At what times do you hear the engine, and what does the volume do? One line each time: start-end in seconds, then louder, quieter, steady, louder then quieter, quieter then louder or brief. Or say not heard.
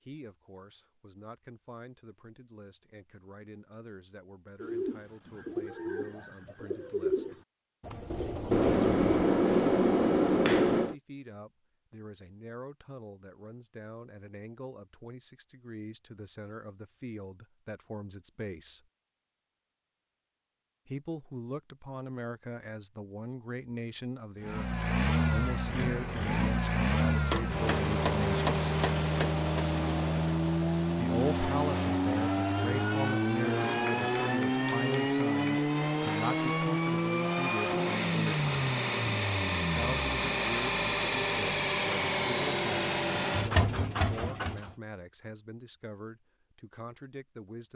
24.4-44.8 steady.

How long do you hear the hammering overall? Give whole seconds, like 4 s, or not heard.
7 s.